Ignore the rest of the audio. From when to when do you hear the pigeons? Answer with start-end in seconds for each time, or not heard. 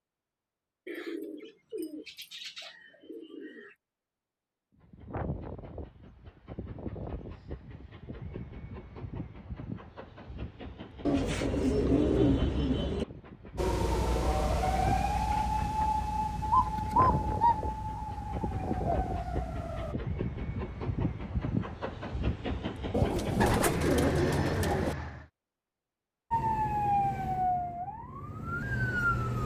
0.8-3.7, 11.1-13.1, 16.5-19.0, 22.9-24.9.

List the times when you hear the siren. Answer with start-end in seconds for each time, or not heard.
13.6-19.9, 26.3-29.4.